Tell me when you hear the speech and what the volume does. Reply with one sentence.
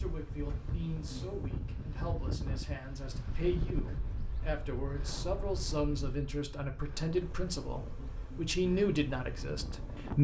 You can hear the speech from 0.0 to 10.1 s, getting louder.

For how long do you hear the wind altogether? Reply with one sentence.
The wind can be heard for 10 seconds in total.